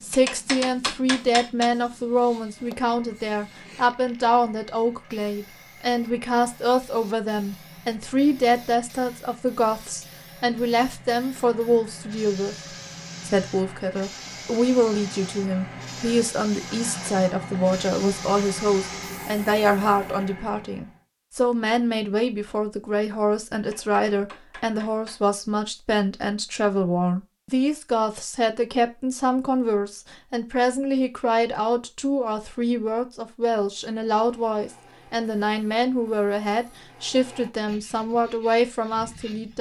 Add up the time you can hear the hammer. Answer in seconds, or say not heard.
3 s.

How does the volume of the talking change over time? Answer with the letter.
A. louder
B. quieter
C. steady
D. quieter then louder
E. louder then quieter
C.